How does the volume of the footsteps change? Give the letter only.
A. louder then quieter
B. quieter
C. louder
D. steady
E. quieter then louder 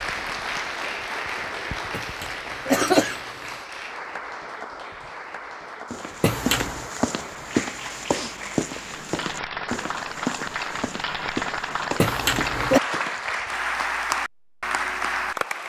B.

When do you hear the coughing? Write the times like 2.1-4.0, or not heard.
1.9-3.2, 6.2-6.9, 11.9-12.8.